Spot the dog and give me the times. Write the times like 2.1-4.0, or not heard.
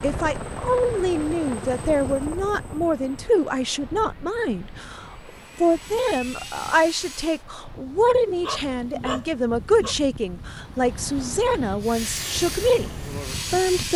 8.4-9.9.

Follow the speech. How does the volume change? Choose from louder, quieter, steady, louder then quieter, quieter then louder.
steady.